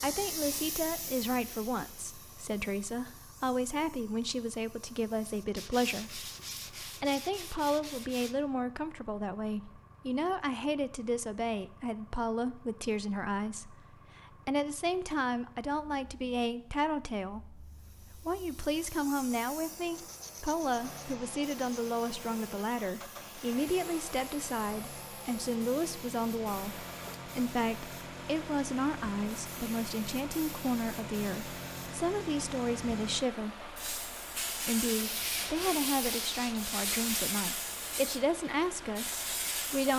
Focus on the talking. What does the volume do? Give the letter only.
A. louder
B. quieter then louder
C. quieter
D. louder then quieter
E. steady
E.